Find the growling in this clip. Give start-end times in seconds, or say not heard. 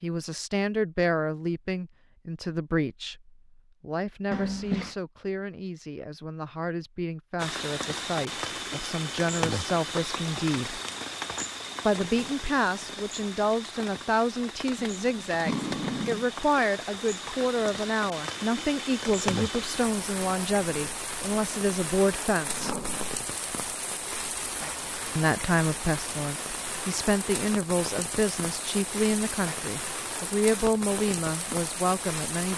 4.3-5.0, 14.9-16.2, 22.4-23.1.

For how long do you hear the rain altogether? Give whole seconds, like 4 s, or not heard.
25 s.